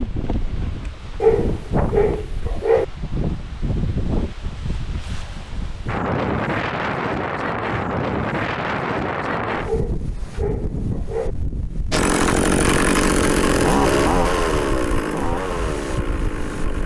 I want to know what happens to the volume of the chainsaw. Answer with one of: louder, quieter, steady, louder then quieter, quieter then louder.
quieter.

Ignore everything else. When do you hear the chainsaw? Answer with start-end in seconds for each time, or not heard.
11.9-16.8.